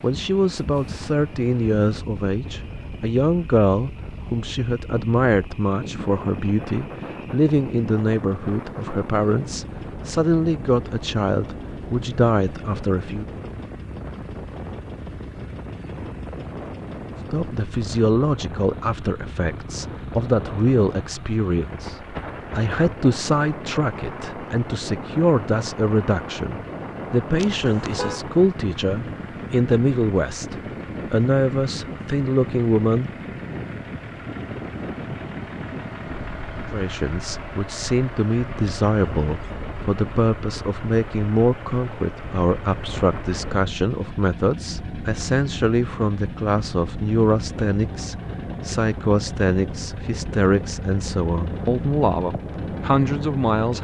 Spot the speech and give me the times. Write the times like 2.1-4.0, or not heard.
0.0-13.2, 17.3-33.1, 36.7-53.7.